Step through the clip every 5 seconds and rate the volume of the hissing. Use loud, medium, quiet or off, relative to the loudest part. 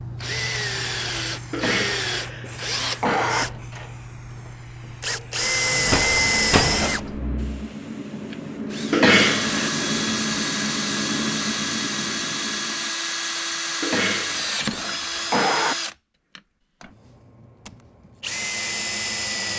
medium, loud, loud, off.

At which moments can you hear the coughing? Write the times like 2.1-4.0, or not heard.
1.5-3.5, 8.9-9.7, 13.8-15.8.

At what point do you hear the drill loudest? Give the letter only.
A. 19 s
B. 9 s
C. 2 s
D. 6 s
D.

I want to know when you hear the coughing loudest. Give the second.
9 s.